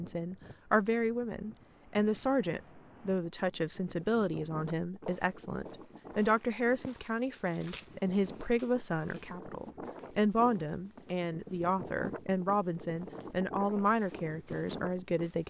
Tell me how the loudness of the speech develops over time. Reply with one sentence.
The loudness of the speech stays about the same.